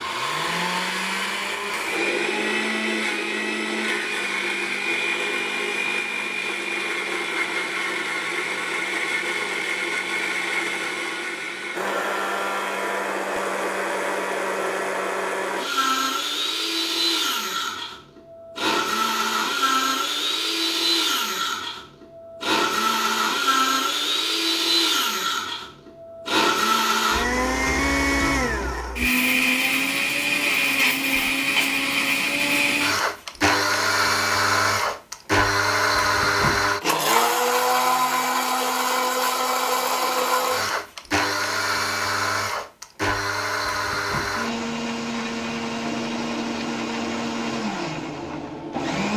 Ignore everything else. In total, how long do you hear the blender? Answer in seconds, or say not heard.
49 s.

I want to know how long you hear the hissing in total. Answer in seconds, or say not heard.
3 s.